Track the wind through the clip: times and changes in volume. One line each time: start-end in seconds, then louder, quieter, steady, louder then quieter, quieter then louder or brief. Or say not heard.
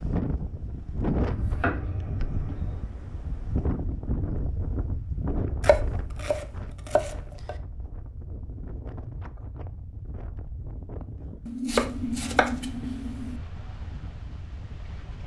0.0-15.2 quieter.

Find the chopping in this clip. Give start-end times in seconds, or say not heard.
1.2-2.9, 5.6-7.5, 11.4-13.4.